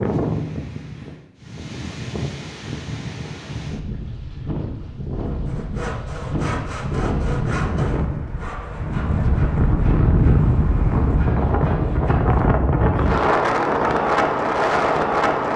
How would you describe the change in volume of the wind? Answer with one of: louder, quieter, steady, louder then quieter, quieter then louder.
louder.